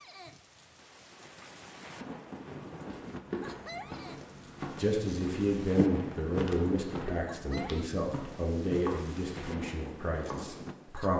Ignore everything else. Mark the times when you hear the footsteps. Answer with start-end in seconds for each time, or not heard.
2.2-10.6.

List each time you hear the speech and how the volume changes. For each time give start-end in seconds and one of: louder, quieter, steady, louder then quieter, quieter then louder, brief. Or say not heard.
4.8-11.1 quieter.